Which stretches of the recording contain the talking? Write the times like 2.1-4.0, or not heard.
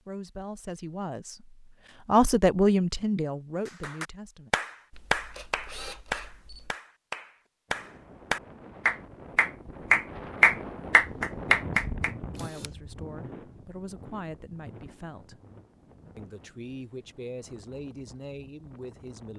0.1-4.5, 12.3-15.4, 16.1-19.3.